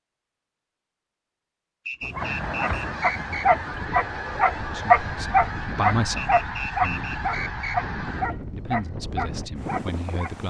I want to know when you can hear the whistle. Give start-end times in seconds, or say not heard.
1.9-3.5, 6.2-7.8.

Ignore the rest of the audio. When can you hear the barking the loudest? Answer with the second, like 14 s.
5 s.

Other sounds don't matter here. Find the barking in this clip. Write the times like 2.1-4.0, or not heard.
2.1-10.3.